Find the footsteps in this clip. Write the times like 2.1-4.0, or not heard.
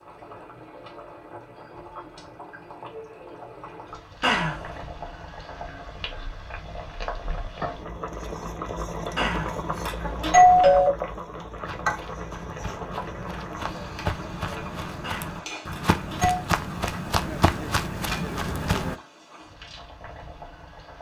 11.6-18.9.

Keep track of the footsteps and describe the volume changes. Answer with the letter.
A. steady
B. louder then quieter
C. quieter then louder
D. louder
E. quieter
D.